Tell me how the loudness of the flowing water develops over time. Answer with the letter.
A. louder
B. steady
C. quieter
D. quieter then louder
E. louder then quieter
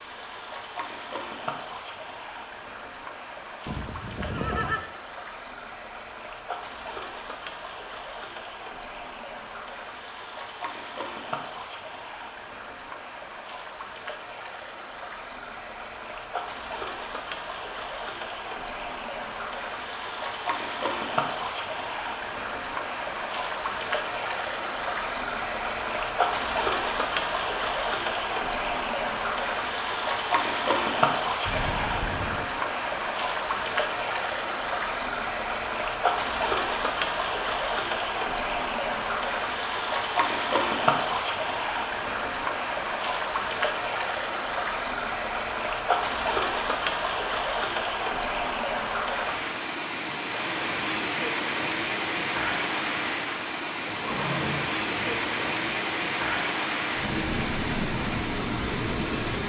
A.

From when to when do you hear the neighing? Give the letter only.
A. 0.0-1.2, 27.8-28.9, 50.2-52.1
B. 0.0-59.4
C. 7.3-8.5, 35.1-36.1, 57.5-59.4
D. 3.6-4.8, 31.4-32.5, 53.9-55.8
D.